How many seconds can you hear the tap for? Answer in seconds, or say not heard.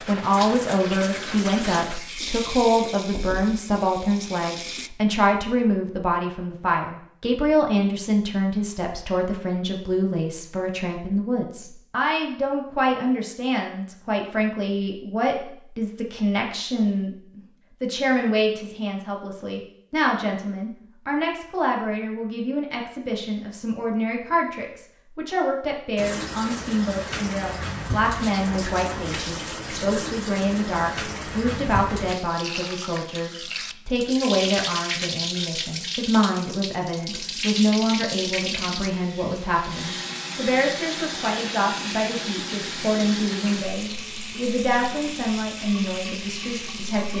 26 s.